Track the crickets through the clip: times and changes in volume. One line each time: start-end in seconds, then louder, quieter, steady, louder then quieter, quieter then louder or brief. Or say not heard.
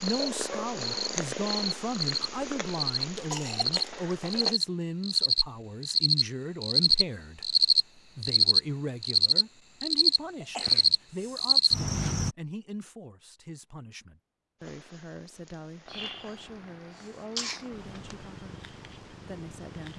0.0-12.3 louder.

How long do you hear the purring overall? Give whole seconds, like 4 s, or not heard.
10 s.